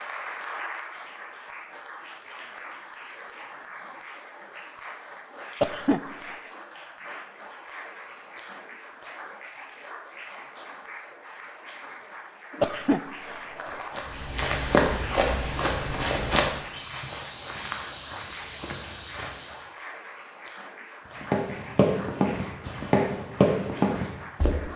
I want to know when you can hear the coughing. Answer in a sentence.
The coughing can be heard from 5.6 to 6.3 s and from 12.6 to 14.0 s.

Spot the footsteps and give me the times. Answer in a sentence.
The footsteps can be heard from 13.9 to 19.7 s and from 21.2 to 24.6 s.